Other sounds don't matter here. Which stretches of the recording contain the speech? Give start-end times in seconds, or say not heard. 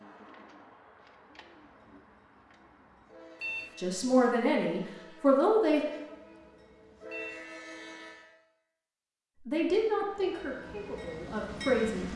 3.8-5.8, 9.3-12.1.